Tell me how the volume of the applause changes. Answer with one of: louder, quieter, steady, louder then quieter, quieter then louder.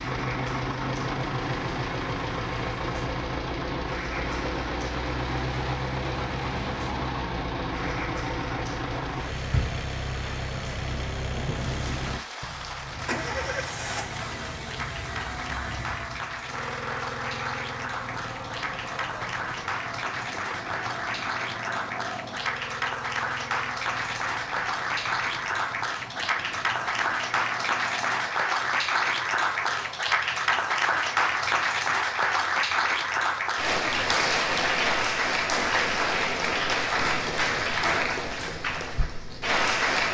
louder.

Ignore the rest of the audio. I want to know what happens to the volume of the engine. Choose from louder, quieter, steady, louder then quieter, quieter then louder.
quieter.